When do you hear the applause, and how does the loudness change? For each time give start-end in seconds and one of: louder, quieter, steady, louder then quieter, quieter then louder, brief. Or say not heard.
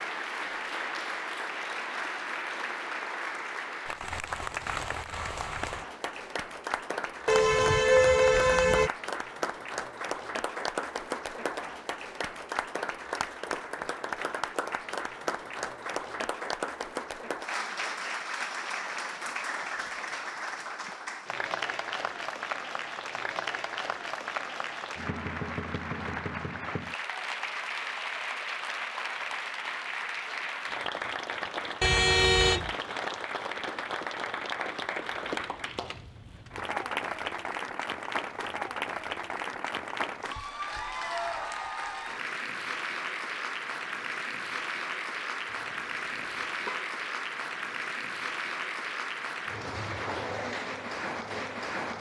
0.0-51.9 steady.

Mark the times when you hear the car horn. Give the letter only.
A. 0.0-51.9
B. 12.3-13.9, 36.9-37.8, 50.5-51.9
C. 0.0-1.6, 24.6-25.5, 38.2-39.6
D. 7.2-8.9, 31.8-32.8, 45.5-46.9
D.